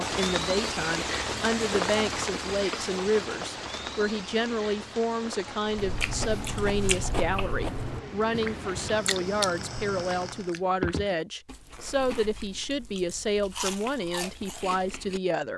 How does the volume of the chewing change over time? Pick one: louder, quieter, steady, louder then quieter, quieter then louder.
quieter then louder.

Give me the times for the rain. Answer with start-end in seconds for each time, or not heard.
0.0-10.6.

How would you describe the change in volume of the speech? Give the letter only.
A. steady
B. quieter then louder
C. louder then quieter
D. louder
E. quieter
A.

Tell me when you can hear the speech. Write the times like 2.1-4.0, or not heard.
0.0-15.5.